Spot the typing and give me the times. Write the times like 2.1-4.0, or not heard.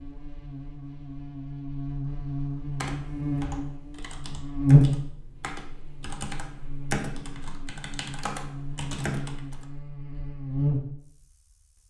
2.8-9.7.